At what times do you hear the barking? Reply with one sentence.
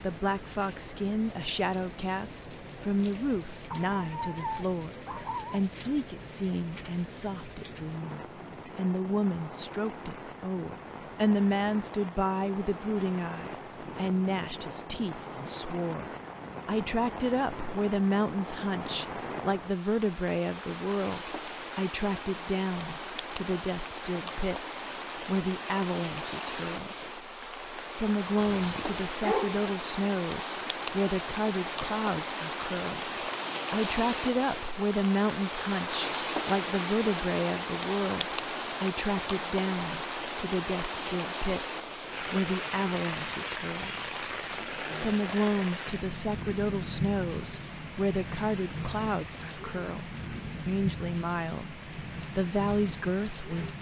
You can hear the barking from 3.7 to 5.6 s and from 28.6 to 29.6 s.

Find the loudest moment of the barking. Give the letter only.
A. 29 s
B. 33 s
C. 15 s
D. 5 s
A.